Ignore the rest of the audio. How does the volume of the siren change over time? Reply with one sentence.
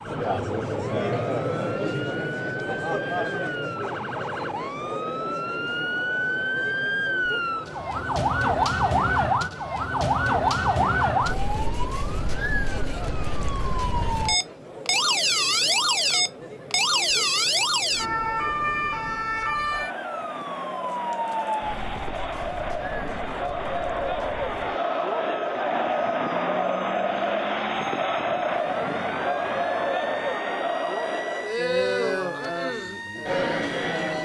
The volume of the siren goes up, then down.